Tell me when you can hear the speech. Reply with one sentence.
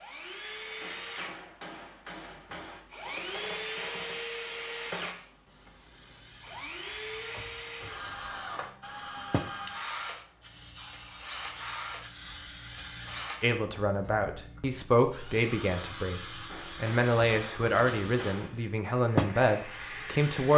The speech can be heard from 13.4 to 16.2 s and from 16.8 to 20.5 s.